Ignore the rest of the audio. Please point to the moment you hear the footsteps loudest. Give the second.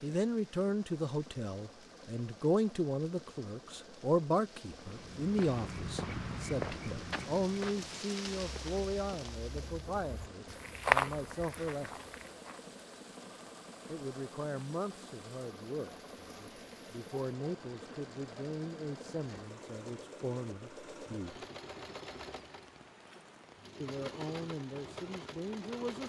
11 s.